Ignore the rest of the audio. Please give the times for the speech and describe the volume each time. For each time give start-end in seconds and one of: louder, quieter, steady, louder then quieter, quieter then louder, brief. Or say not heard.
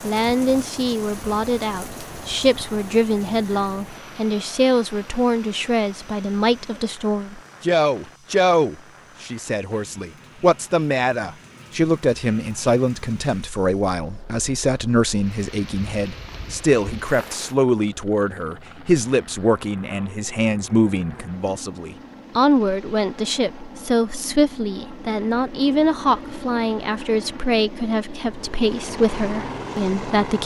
0.0-30.4 steady.